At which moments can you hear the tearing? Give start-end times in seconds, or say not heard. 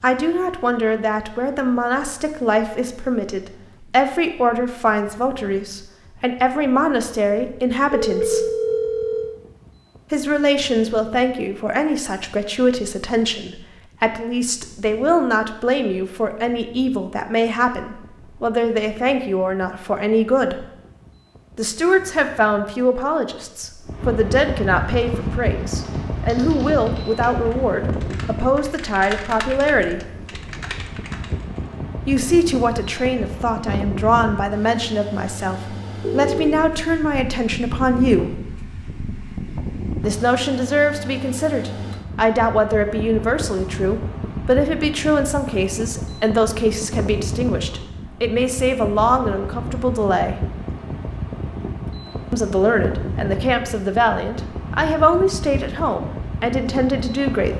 not heard.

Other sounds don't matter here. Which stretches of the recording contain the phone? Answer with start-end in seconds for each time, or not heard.
7.9-9.4, 36.0-36.6.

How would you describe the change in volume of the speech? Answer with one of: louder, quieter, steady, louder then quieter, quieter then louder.
steady.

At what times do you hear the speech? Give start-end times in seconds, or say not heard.
0.0-8.4, 10.1-20.6, 21.6-30.0, 32.0-38.4, 40.0-50.4, 52.3-57.5.